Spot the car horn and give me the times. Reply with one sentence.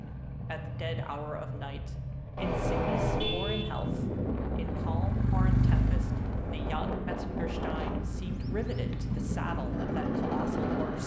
The car horn can be heard from 2.4 to 4.0 s.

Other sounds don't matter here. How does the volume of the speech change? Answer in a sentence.
The loudness of the speech stays about the same.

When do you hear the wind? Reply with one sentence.
You can hear the wind from 3.8 to 11.0 s.